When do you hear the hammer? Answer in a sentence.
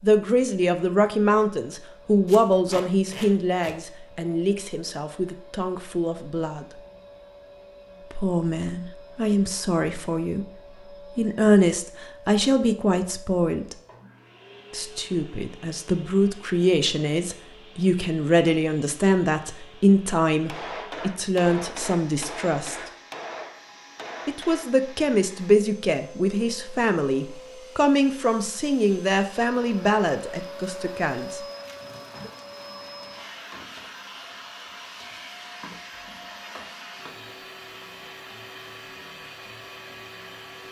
The hammer can be heard from 20.3 to 24.8 s.